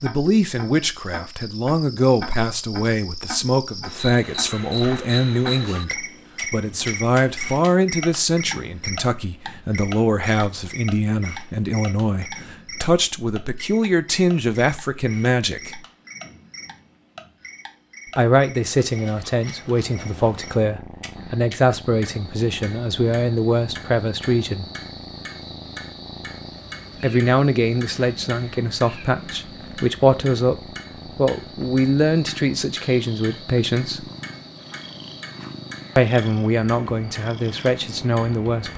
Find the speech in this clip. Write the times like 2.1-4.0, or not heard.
0.0-15.8, 18.1-24.6, 27.0-34.1, 36.0-38.7.